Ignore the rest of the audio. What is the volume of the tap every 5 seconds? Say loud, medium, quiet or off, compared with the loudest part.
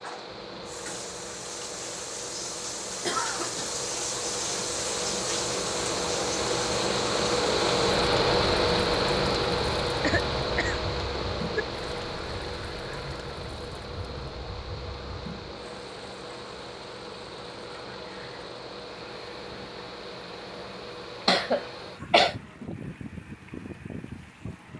loud, loud, medium, quiet, quiet.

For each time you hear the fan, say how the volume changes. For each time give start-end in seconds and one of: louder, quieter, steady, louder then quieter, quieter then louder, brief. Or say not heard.
0.0-24.7 louder then quieter.